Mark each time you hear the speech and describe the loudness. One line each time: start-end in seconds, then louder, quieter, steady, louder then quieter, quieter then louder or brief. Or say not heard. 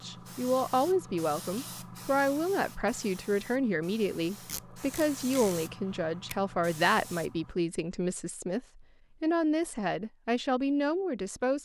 0.0-11.5 steady.